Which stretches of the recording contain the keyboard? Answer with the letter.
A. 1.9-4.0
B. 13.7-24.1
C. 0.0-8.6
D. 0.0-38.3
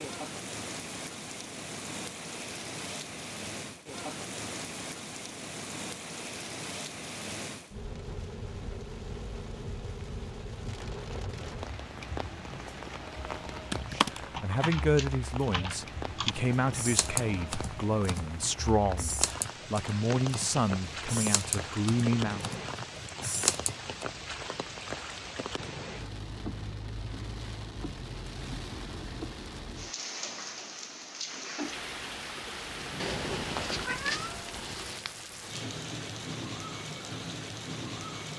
B.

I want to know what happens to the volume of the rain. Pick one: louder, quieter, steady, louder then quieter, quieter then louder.
steady.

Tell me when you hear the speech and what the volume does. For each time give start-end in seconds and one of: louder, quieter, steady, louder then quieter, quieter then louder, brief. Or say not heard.
13.9-22.4 steady.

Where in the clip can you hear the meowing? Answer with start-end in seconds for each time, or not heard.
33.0-35.1.